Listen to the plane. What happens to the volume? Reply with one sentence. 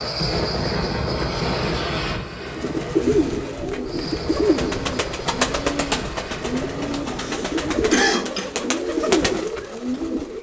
The loudness of the plane goes down.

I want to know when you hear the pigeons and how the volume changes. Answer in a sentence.
You can hear the pigeons from 2.4 to 10.3 s, at a steady volume.